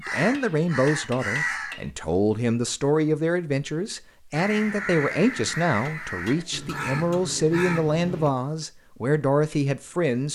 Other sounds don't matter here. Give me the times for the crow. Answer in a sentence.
The crow can be heard from 0.0 to 1.8 s and from 4.3 to 8.7 s.